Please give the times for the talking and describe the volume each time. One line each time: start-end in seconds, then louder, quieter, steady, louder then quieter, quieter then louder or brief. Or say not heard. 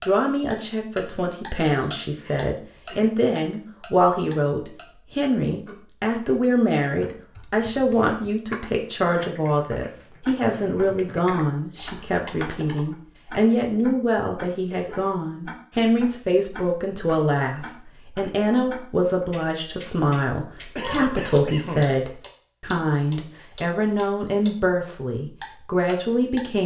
0.0-26.6 steady.